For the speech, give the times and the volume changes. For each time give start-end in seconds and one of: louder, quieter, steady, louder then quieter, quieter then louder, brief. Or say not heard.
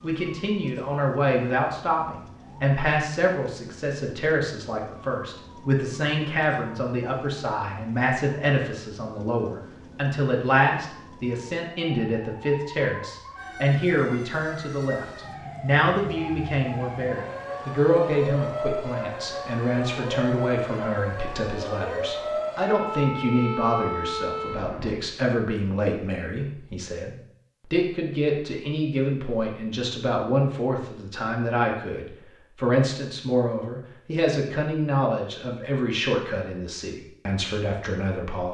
0.0-38.4 steady.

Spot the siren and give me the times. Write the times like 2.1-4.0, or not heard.
0.0-24.9.